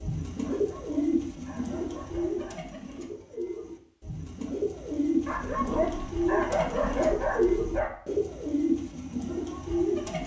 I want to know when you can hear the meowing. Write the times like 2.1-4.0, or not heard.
not heard.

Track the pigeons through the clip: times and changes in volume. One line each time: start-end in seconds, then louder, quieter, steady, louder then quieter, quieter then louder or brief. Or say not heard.
0.0-10.2 quieter then louder.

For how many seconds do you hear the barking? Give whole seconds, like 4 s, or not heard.
5 s.